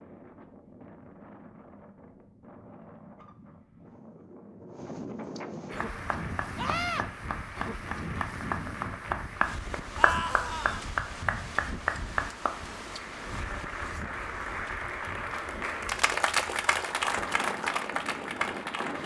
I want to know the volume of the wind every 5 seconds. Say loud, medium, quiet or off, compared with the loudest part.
medium, loud, loud, loud.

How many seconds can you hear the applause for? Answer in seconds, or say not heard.
13 s.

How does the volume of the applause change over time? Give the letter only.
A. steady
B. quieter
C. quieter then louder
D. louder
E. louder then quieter
D.